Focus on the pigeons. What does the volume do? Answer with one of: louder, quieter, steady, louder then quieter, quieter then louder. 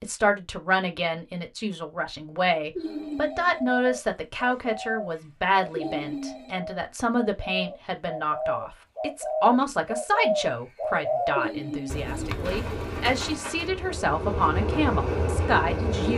louder then quieter.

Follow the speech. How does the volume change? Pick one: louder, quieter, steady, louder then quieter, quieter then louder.
steady.